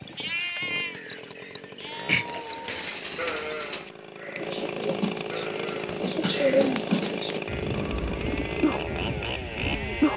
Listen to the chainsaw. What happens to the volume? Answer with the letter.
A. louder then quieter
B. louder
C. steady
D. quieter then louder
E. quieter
B.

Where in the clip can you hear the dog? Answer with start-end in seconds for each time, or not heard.
not heard.